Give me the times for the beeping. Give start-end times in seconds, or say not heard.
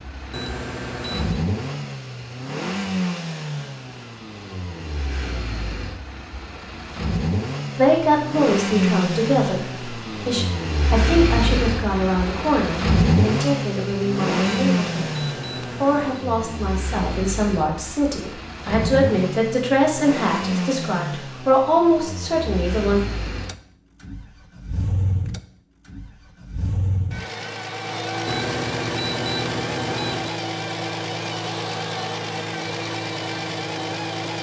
0.3-1.4, 14.4-16.2, 28.2-30.4.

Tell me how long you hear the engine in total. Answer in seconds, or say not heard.
34 s.